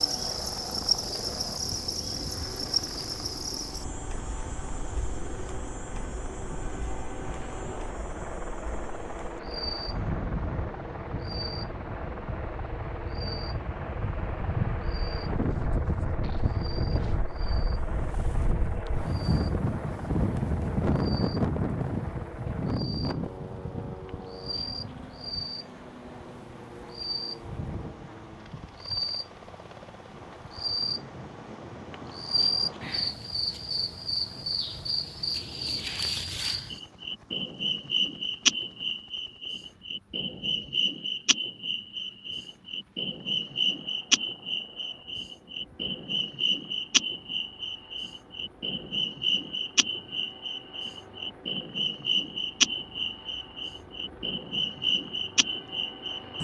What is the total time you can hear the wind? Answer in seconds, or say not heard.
33 s.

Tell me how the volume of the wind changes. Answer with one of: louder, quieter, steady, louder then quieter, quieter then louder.
louder then quieter.